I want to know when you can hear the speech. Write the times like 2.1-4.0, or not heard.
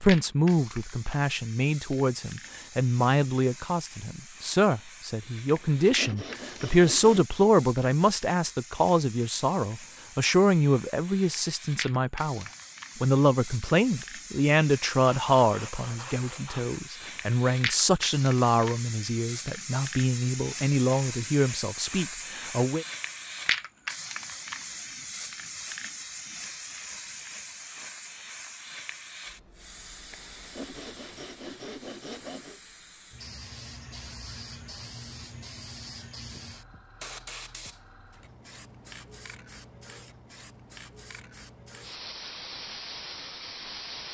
0.0-22.9.